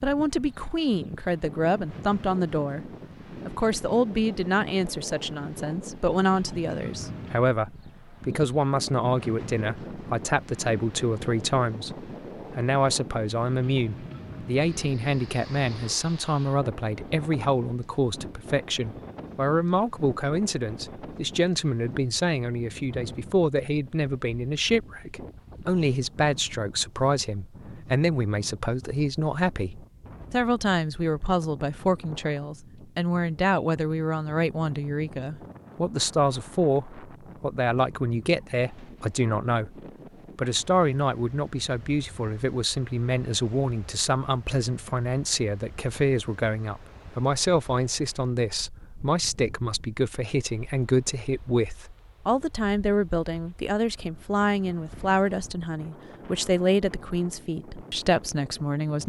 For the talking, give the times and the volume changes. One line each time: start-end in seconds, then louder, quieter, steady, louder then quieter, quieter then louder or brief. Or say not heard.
0.0-59.0 steady.